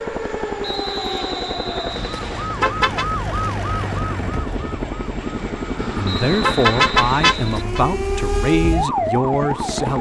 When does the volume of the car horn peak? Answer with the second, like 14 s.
7 s.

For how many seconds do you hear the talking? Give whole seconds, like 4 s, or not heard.
4 s.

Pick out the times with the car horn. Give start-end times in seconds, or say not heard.
1.9-3.0, 5.8-7.8.